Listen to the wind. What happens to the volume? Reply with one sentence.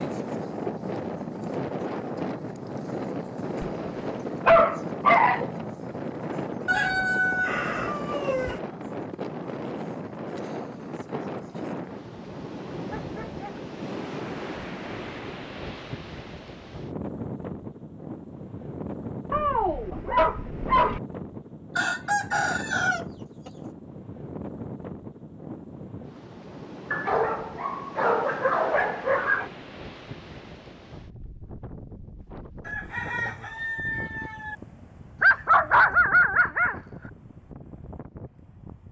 The volume of the wind goes down.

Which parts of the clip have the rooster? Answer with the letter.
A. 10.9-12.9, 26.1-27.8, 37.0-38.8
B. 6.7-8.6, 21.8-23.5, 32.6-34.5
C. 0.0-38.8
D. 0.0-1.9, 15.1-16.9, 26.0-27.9
B.